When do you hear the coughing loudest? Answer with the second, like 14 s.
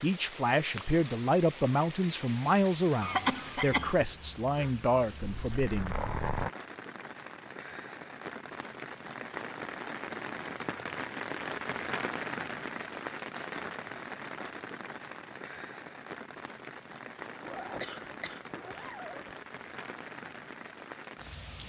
3 s.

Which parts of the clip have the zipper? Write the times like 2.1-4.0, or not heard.
5.2-6.5, 17.4-19.4.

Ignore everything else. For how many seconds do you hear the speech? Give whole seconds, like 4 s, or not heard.
6 s.